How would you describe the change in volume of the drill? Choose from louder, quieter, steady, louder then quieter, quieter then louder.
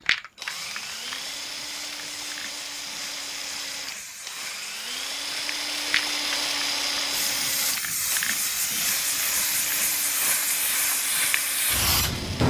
louder then quieter.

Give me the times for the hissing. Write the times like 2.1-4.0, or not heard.
0.0-12.4.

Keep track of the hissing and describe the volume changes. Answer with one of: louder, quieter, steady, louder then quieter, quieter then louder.
louder.